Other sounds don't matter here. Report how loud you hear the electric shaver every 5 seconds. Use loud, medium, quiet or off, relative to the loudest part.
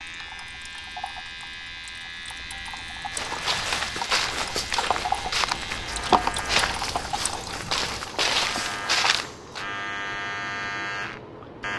medium, loud, loud.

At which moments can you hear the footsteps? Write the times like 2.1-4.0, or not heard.
3.1-9.7.